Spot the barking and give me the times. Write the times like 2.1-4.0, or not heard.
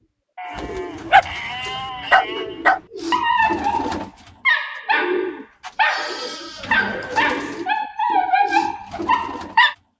1.1-9.8.